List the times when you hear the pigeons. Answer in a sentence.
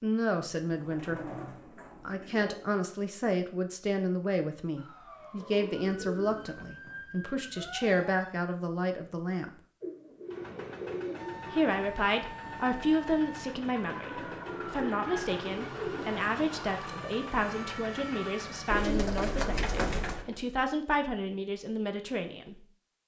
The pigeons can be heard from 0.6 to 2.7 s, from 5.4 to 7.0 s, from 9.8 to 11.4 s, from 14.0 to 16.6 s and from 18.7 to 20.2 s.